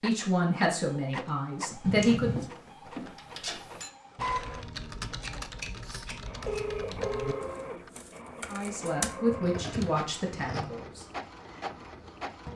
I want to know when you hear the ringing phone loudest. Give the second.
7 s.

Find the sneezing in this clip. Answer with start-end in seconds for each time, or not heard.
not heard.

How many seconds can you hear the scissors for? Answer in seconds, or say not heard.
4 s.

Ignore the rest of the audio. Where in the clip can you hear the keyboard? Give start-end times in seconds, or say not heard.
3.1-10.1.